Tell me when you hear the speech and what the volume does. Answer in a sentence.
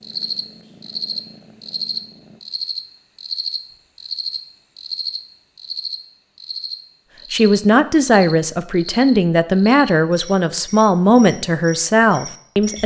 The speech can be heard from 7.3 to 12.8 s, at a steady volume.